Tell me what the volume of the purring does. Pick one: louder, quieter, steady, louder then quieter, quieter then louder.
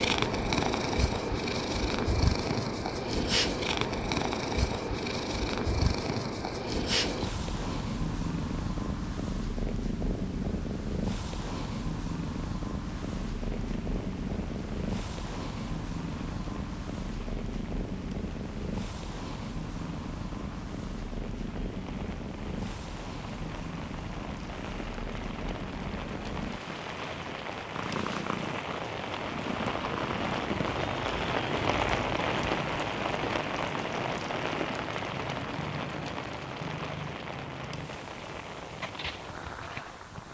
quieter.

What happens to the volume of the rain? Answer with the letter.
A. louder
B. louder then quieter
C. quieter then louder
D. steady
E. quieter
B.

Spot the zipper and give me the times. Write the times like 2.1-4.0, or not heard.
not heard.